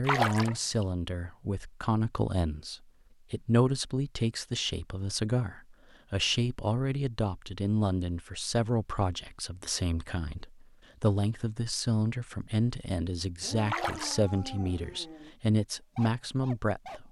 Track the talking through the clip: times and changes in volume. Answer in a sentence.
You can hear the talking from 0.0 to 17.0 s, at a steady volume.